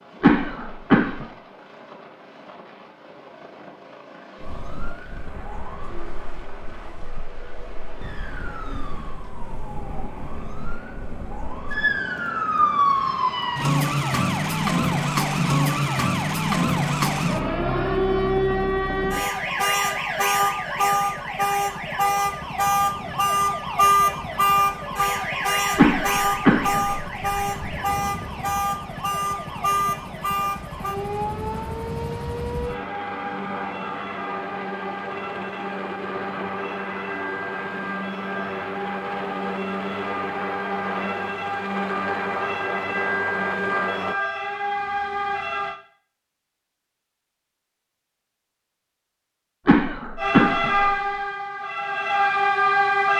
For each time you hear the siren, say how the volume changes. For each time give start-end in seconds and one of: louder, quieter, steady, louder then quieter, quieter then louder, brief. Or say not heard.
4.4-45.8 louder then quieter
50.1-53.1 brief.